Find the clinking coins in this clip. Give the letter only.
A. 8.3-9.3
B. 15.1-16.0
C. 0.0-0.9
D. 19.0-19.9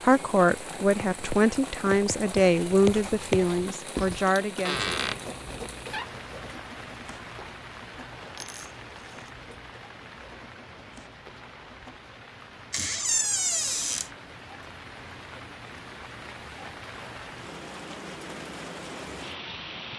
A.